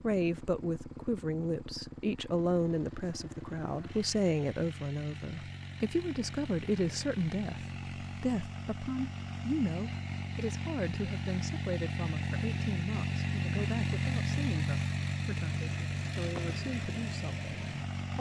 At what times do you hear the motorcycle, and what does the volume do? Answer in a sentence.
You can hear the motorcycle from 0.0 to 18.1 s, getting louder.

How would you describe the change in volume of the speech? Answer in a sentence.
The loudness of the speech goes down.